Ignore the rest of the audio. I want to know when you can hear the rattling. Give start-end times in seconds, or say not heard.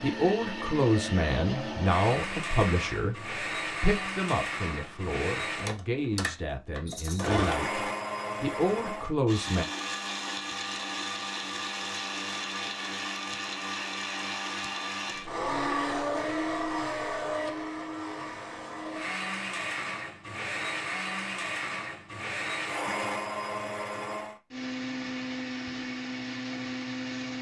6.8-7.3.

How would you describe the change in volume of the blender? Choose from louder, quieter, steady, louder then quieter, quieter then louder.
steady.